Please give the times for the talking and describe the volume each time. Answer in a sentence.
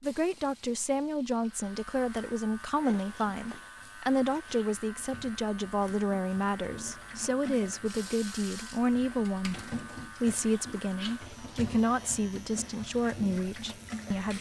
You can hear the talking from 0.0 to 14.3 s, at a steady volume.